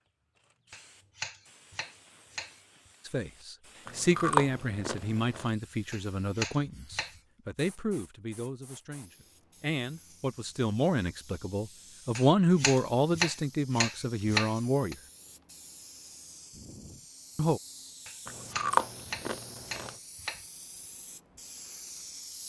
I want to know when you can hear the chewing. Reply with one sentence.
The chewing can be heard from 3.9 to 5.5 s and from 18.2 to 19.9 s.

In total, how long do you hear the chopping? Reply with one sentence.
You can hear the chopping for 9 seconds altogether.